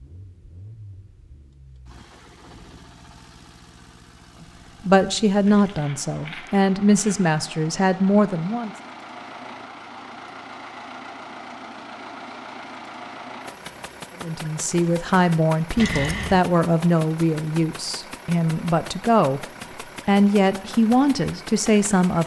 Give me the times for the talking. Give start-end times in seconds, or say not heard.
4.8-8.7, 14.2-19.4, 20.1-22.2.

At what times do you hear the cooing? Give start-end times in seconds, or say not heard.
not heard.